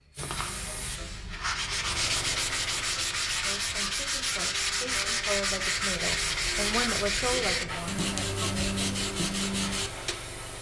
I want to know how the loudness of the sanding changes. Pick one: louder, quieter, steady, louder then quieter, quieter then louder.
steady.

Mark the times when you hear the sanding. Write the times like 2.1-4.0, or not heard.
0.1-10.2.